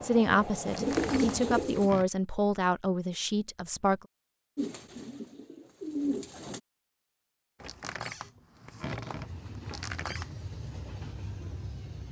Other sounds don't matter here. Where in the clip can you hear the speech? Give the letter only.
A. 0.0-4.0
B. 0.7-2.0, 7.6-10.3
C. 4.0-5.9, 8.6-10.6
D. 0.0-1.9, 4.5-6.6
A.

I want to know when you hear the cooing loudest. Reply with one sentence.
The volume of the cooing peaks at 1 second.